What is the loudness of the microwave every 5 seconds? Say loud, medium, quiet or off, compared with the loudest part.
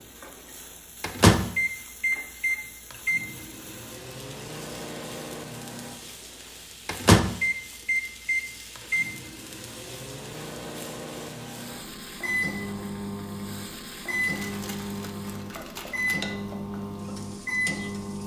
loud, loud, medium, medium.